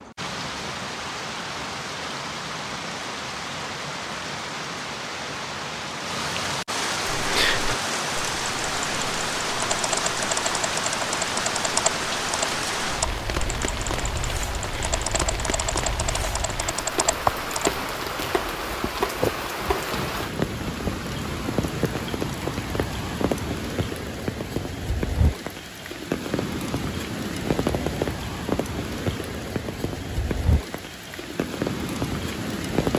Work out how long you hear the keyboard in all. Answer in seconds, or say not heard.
11 s.